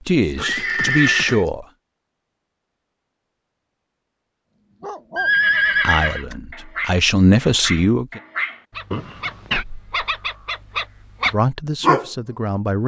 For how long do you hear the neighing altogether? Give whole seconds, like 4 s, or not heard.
3 s.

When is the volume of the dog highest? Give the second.
12 s.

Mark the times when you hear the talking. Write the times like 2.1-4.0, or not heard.
0.0-1.6, 5.8-8.2, 11.2-12.8.